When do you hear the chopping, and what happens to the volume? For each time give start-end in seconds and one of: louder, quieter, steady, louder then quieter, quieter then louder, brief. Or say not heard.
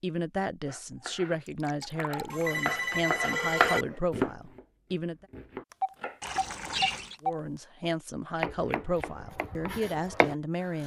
0.7-6.2 louder then quieter
8.3-10.8 brief.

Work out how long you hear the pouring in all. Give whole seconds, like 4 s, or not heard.
2 s.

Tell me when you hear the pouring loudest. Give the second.
7 s.